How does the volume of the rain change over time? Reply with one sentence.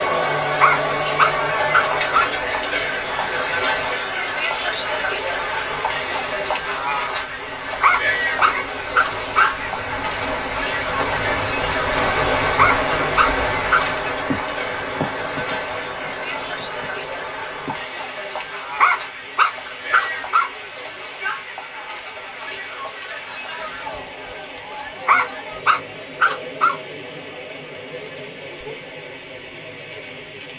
The volume of the rain goes up, then down.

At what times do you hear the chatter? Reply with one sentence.
The chatter can be heard from 0.0 to 30.5 s.